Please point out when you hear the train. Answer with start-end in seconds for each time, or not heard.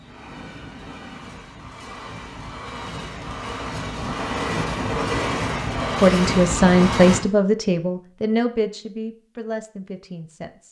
0.0-7.2.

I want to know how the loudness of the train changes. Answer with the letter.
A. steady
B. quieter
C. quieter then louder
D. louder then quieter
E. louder
E.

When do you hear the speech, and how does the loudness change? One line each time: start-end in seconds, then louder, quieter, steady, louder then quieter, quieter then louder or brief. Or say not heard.
6.0-10.6 quieter.